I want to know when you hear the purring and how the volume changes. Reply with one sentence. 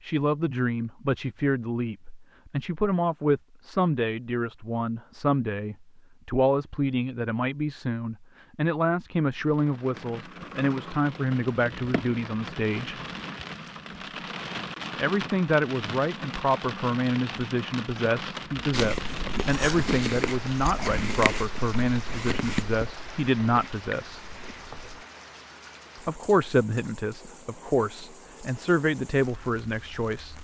You can't hear the purring here.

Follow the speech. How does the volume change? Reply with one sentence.
The loudness of the speech stays about the same.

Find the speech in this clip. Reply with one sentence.
The speech can be heard from 0.0 to 12.9 s, from 14.9 to 24.2 s and from 26.1 to 30.3 s.